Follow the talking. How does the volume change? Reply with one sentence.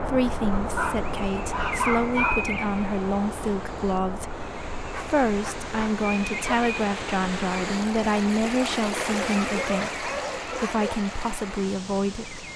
The loudness of the talking stays about the same.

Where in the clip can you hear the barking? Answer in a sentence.
You can hear the barking from 0.5 to 2.5 s, from 4.9 to 6.6 s and from 8.9 to 10.9 s.